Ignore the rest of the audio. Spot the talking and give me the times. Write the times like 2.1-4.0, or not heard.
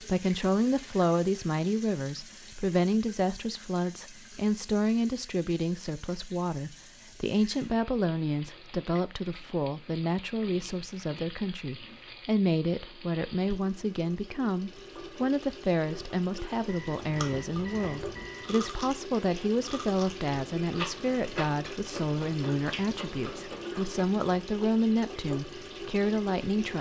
0.0-26.7.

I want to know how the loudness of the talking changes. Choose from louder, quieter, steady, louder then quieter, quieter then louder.
steady.